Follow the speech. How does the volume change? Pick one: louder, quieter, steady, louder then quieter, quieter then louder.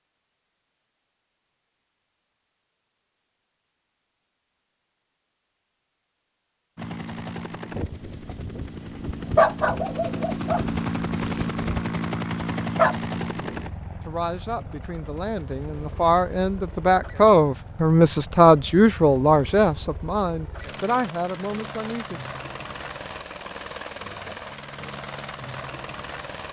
louder then quieter.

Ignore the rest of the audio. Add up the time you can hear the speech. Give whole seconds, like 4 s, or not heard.
8 s.